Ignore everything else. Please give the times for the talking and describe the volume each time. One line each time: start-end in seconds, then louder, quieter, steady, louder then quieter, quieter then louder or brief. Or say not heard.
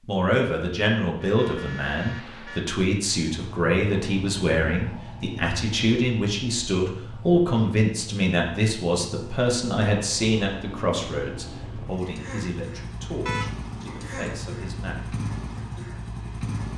0.1-15.2 quieter.